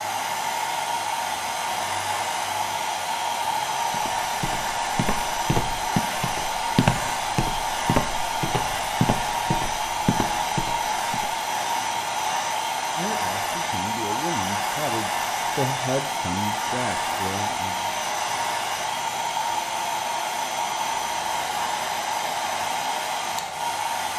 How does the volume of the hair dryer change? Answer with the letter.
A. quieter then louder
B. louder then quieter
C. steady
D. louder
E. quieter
C.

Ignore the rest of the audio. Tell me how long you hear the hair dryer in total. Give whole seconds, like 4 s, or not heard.
24 s.